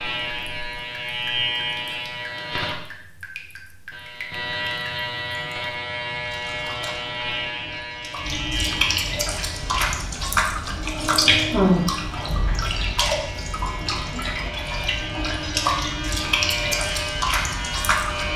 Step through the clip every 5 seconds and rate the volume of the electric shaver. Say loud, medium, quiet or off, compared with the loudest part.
loud, loud, medium, loud.